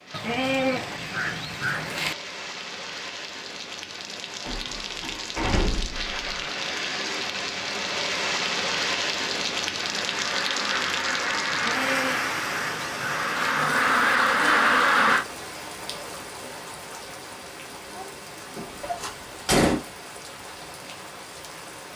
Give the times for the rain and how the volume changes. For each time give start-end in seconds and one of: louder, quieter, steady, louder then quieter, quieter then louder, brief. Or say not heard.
0.0-21.9 louder then quieter.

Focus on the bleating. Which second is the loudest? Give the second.
1 s.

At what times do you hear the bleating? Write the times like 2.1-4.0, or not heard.
0.1-2.1, 11.5-13.6.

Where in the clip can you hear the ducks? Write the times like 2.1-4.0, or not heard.
9.8-15.2.